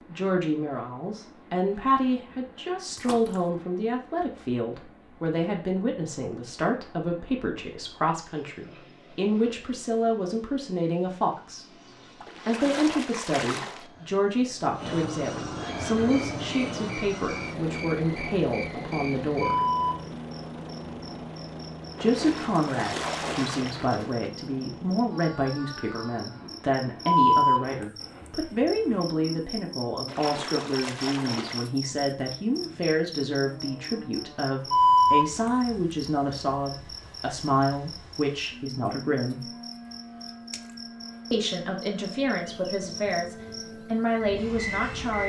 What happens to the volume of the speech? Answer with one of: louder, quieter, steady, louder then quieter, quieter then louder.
steady.